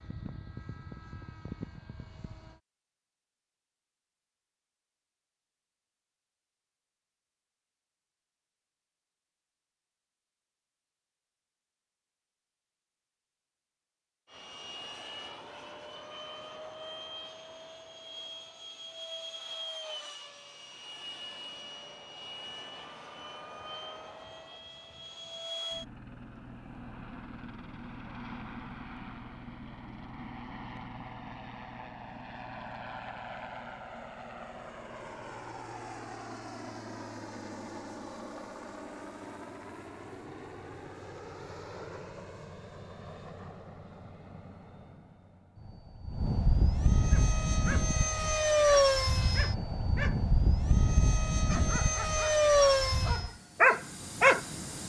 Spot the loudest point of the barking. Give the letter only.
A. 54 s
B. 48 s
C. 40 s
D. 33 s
A.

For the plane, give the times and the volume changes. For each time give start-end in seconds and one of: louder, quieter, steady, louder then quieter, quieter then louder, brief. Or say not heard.
0.0-2.6 brief
14.2-54.8 louder.